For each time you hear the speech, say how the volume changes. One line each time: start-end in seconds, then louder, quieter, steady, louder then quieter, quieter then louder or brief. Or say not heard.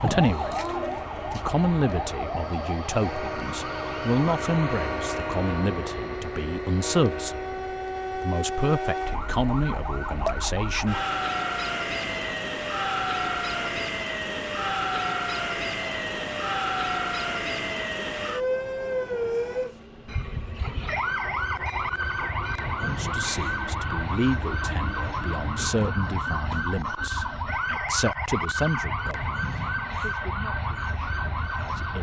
0.0-10.9 steady
22.8-31.9 quieter.